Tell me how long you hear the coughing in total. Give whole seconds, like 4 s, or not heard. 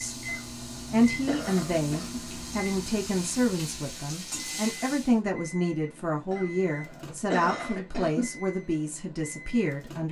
4 s.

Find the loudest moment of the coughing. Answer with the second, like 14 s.
7 s.